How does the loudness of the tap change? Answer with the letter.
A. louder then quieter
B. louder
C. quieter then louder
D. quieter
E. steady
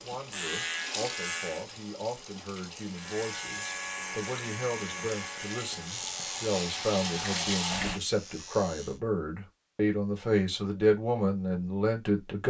C.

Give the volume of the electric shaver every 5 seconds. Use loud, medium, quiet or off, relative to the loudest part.
loud, loud, off.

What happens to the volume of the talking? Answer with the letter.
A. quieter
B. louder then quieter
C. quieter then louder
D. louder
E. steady
D.